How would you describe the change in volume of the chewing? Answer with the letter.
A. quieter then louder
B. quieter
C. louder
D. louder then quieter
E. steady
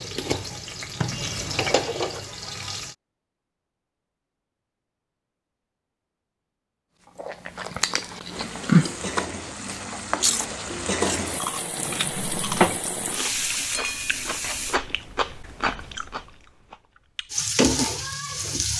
B.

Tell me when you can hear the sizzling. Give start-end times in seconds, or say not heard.
0.0-3.0, 8.3-14.8, 17.3-18.7.